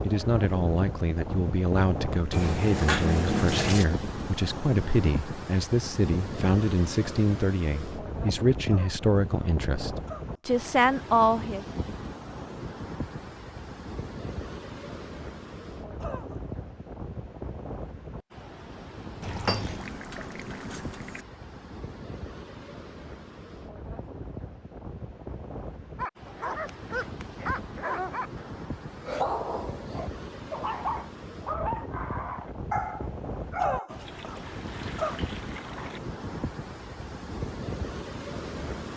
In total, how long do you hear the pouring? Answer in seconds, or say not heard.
6 s.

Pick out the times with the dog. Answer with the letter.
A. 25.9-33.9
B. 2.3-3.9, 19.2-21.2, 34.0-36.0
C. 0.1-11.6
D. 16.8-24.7
A.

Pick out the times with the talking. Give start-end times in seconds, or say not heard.
0.1-11.6.